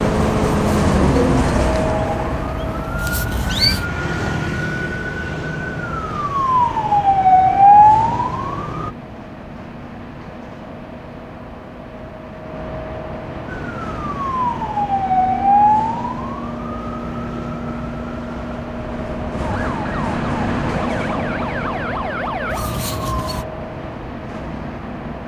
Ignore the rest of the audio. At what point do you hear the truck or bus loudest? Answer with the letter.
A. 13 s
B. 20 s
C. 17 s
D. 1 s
D.